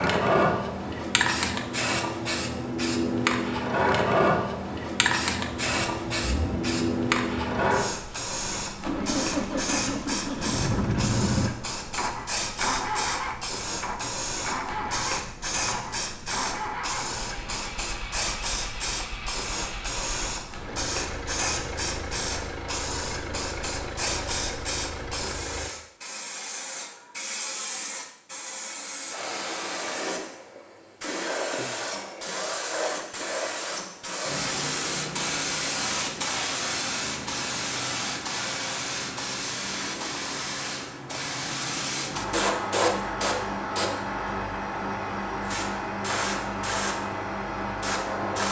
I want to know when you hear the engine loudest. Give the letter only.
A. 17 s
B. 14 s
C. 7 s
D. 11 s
D.